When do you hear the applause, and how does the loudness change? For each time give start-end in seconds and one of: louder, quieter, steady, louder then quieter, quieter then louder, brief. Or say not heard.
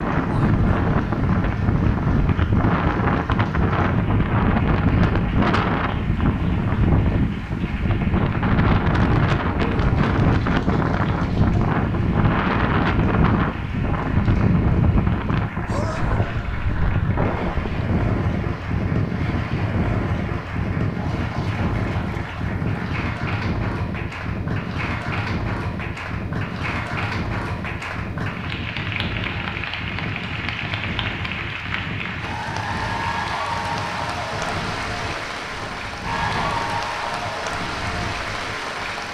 0.0-39.1 louder.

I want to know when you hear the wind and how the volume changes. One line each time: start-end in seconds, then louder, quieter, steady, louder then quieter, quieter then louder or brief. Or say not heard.
0.0-39.1 quieter.